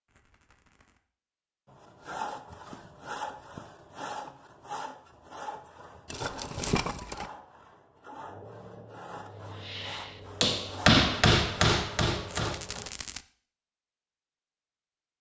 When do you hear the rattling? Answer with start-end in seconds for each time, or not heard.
0.1-1.0, 6.0-7.3, 12.2-13.2.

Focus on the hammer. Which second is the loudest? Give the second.
11 s.